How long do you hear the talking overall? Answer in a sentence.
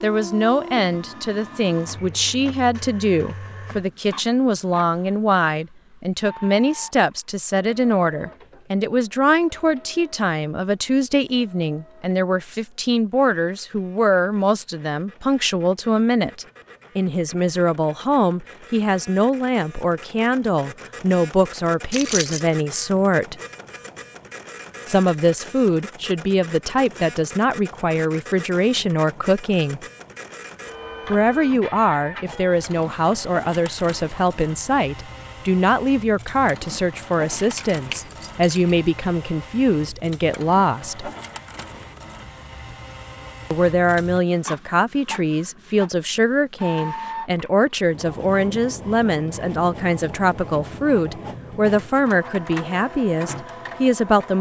You can hear the talking for 49 seconds altogether.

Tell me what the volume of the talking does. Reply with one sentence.
The loudness of the talking stays about the same.